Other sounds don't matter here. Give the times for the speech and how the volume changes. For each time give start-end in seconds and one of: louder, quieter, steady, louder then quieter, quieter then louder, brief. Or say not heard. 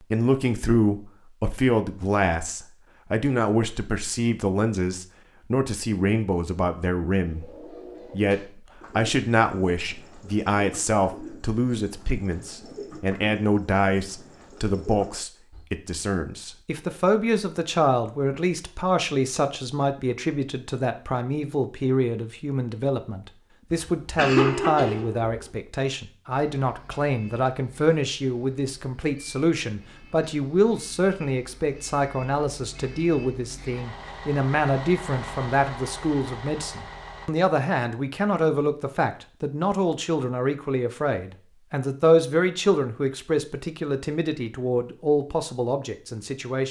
0.0-46.6 steady.